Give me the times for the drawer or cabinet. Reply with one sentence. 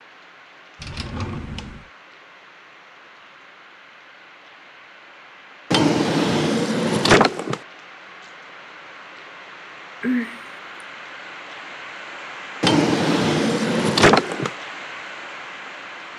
You can hear the drawer or cabinet from 0.8 to 1.9 s, from 5.7 to 7.6 s and from 12.6 to 14.5 s.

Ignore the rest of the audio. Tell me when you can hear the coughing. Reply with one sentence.
You can hear the coughing from 10.0 to 10.4 s.